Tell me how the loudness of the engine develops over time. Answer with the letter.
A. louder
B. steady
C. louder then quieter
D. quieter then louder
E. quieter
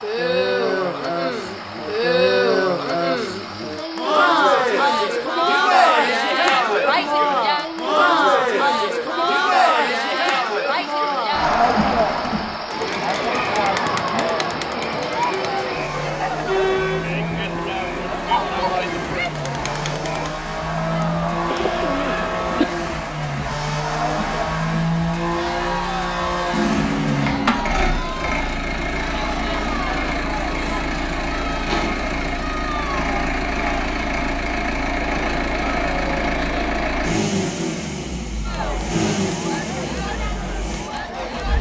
A.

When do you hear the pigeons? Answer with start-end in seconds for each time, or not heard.
21.4-22.6.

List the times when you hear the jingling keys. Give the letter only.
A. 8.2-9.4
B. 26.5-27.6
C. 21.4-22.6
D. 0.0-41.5
B.